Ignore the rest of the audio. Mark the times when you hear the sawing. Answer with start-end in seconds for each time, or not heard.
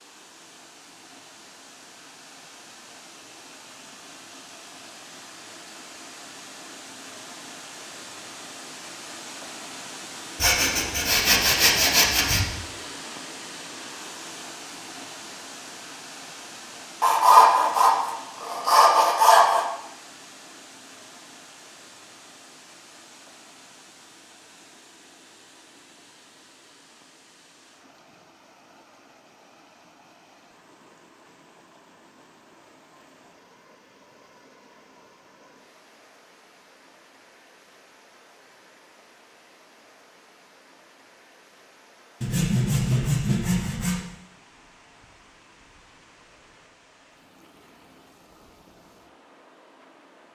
10.4-12.4, 17.0-19.6, 42.2-44.0.